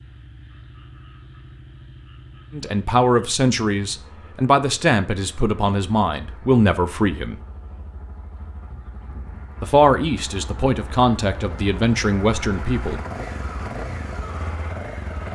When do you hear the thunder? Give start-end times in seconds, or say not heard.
not heard.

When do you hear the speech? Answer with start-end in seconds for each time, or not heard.
2.5-7.3, 9.6-13.0.